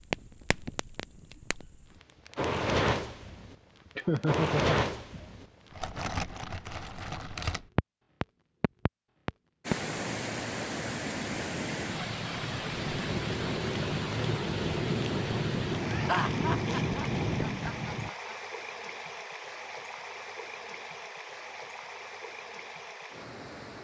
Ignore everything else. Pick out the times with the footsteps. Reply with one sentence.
The footsteps can't be heard in this clip.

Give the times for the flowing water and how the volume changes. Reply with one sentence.
You can hear the flowing water from 9.6 to 23.7 s, getting quieter.